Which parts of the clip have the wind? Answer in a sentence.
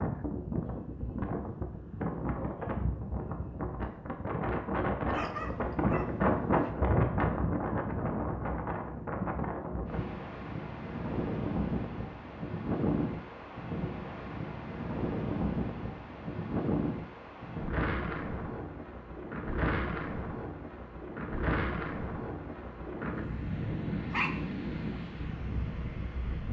You can hear the wind from 0.0 to 26.4 s.